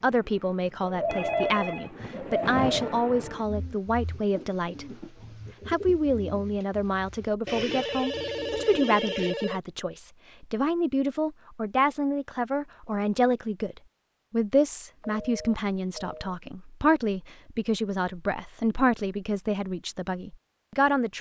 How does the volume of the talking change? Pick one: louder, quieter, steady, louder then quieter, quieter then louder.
steady.